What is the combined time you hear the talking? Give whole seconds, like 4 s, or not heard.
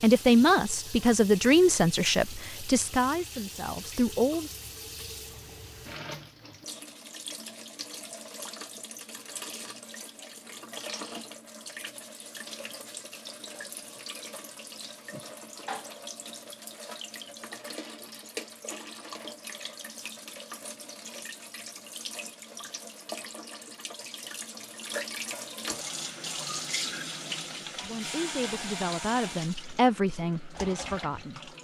8 s.